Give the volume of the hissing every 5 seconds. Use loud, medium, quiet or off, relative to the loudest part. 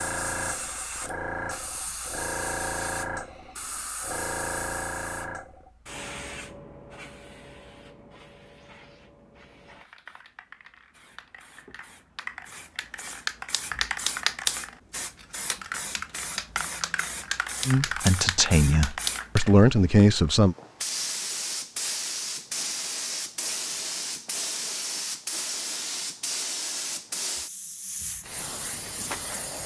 loud, medium, loud, loud, loud, loud.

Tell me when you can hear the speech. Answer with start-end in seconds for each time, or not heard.
17.6-20.6.